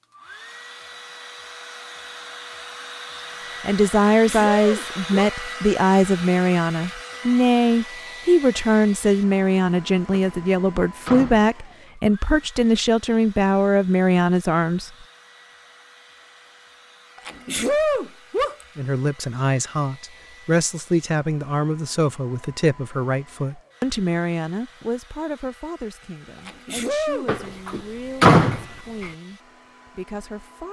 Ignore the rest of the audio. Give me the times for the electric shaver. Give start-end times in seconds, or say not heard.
not heard.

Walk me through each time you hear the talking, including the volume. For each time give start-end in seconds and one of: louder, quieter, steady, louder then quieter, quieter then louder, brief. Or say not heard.
3.6-14.9 steady
18.8-30.6 quieter.